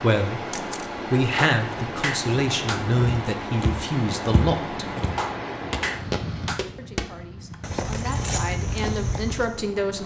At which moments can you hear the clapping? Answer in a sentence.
The clapping can be heard from 1.4 to 2.9 s and from 5.2 to 6.7 s.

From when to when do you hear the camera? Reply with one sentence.
The camera can be heard from 0.5 to 0.9 s and from 7.5 to 8.1 s.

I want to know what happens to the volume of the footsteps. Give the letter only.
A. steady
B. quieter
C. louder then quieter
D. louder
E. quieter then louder
D.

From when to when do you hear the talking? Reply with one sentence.
You can hear the talking from 0.0 to 0.4 s, from 1.1 to 5.0 s and from 6.8 to 10.0 s.